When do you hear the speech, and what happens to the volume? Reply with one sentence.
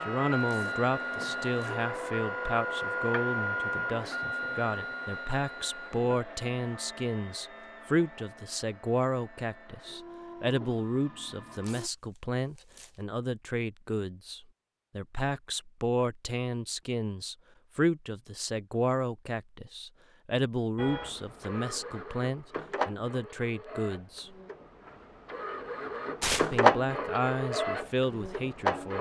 The speech can be heard from 0.1 to 24.4 s, at a steady volume; and briefly from 26.4 to 28.9 s.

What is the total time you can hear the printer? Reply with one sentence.
The printer can be heard for 20 seconds in total.